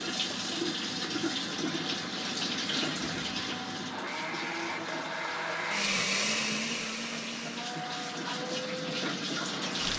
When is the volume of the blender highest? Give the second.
6 s.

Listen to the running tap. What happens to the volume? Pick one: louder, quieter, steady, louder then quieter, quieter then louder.
quieter then louder.